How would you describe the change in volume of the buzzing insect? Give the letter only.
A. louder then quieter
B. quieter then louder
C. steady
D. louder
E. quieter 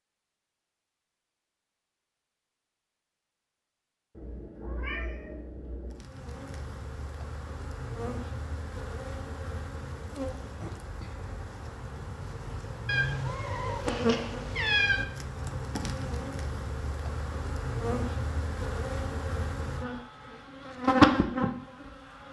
D.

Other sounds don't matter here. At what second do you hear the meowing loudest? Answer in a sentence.
The volume of the meowing peaks at 15 seconds.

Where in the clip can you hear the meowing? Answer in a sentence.
The meowing can be heard from 4.2 to 6.0 s and from 12.8 to 15.1 s.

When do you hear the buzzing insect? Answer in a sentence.
You can hear the buzzing insect from 5.9 to 22.2 s.